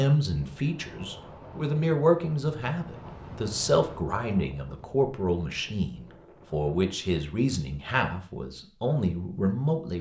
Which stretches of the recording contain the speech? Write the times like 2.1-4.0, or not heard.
0.0-9.9.